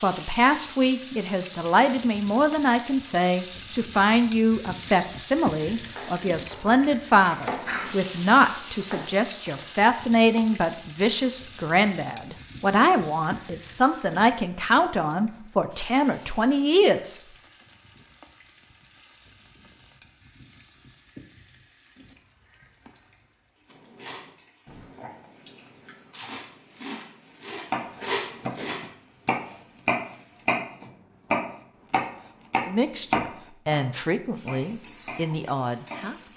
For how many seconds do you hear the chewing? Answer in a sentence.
You can hear the chewing for 5 seconds altogether.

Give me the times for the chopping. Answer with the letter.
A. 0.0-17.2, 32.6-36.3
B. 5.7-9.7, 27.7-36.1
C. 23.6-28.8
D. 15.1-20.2
B.